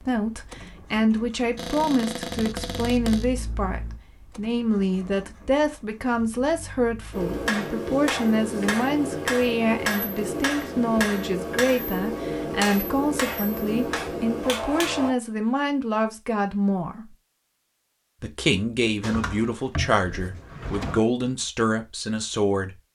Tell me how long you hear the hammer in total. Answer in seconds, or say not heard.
8 s.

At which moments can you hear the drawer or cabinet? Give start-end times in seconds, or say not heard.
1.6-3.2, 19.0-21.0.